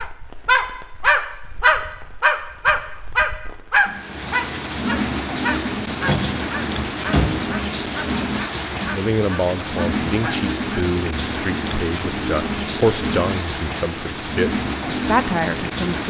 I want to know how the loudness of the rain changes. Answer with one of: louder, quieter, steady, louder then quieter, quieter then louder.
louder.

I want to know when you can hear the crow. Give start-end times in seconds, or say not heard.
not heard.